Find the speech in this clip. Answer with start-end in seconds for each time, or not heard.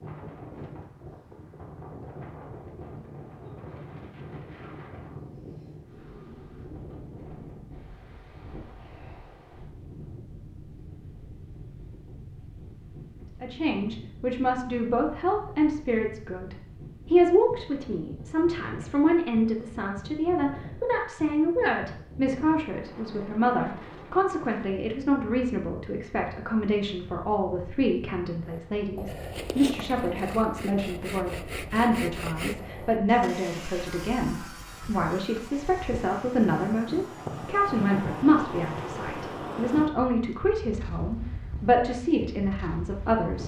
13.4-43.4.